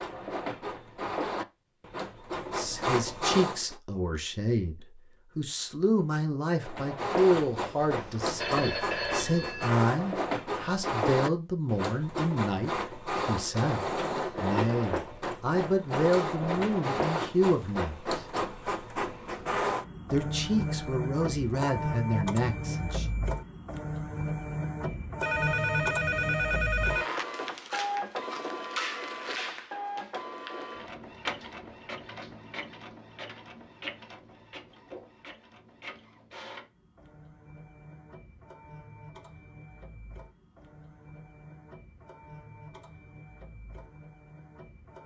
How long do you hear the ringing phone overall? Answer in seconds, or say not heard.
4 s.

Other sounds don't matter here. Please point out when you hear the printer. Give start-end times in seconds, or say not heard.
0.0-3.8, 6.6-45.0.